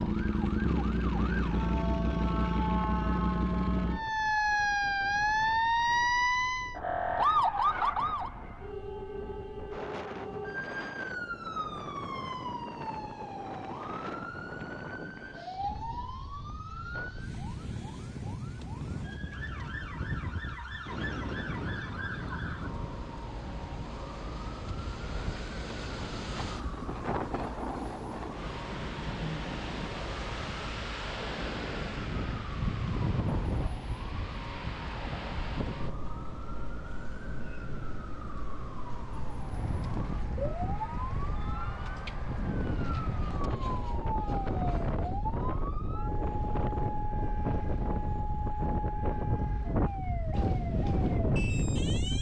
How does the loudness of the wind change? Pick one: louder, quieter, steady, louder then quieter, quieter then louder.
louder.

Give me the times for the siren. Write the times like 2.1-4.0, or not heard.
0.0-52.1.